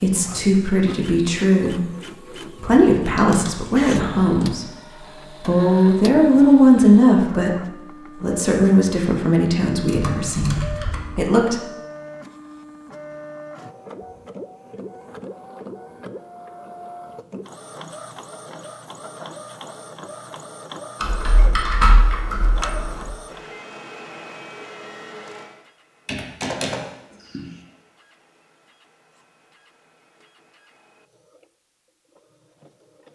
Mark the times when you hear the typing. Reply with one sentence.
The typing can be heard from 2.5 to 4.6 s, from 9.8 to 11.3 s, from 21.0 to 23.1 s and from 26.1 to 26.8 s.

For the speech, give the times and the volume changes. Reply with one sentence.
The speech can be heard briefly from 0.0 to 1.9 s; briefly from 2.5 to 4.7 s; and from 5.4 to 11.6 s, getting quieter.